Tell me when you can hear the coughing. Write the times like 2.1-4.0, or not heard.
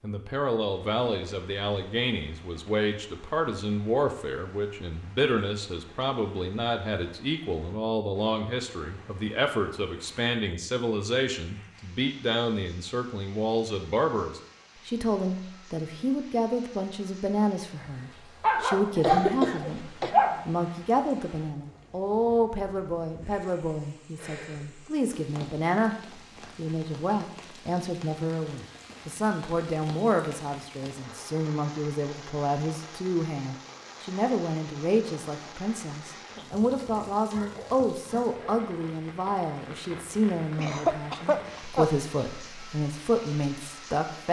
18.9-20.1, 40.5-41.9.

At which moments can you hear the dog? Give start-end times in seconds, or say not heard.
18.4-20.4, 37.3-39.0.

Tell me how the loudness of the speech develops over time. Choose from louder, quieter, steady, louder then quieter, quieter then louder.
steady.